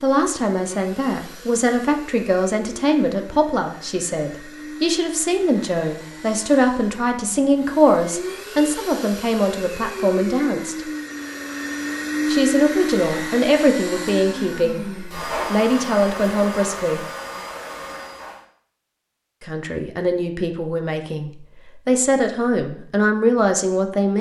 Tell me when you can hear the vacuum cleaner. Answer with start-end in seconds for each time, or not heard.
0.0-18.4.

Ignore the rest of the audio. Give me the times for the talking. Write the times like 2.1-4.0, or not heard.
0.0-10.8, 12.2-17.1, 19.4-24.1.